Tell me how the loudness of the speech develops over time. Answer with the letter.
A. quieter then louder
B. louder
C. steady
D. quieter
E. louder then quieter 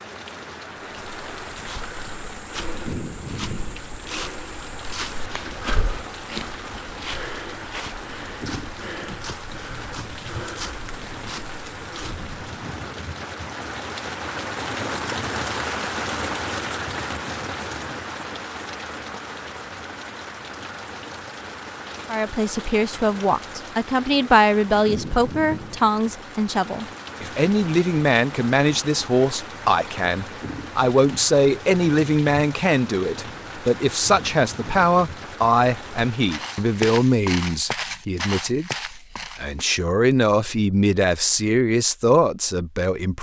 C.